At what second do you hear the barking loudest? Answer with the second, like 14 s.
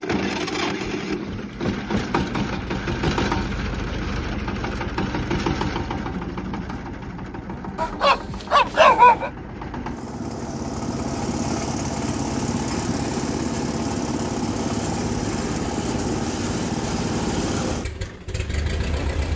9 s.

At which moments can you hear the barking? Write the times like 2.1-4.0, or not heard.
7.8-9.3.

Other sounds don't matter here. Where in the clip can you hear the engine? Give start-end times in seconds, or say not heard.
0.0-19.3.